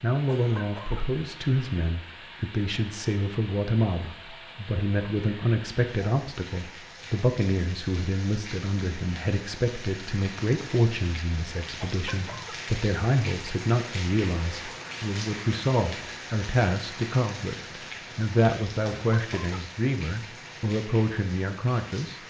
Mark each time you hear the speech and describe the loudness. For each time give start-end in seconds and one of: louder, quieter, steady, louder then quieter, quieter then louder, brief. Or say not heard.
0.0-22.2 steady.